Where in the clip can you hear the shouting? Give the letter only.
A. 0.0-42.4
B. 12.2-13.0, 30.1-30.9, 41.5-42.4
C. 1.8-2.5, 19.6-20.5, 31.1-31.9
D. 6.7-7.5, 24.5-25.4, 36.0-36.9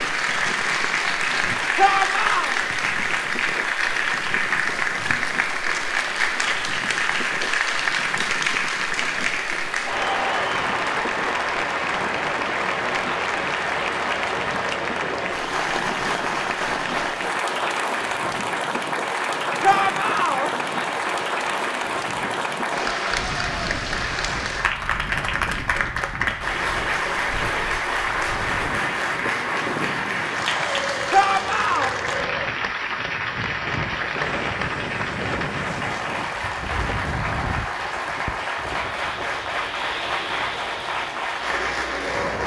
C.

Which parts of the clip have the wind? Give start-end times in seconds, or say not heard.
0.0-42.4.